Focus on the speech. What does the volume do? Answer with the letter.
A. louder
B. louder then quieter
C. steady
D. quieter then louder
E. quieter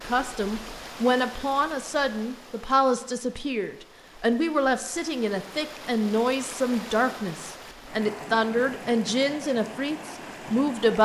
C.